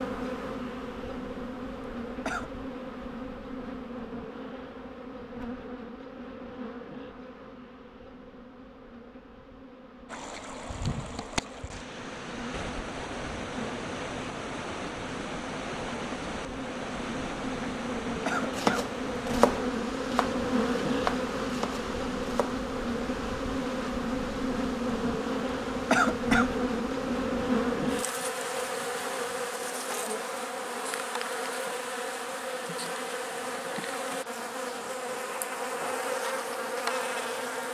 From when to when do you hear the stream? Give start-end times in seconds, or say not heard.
10.1-37.6.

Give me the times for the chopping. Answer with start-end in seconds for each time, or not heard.
18.6-22.6.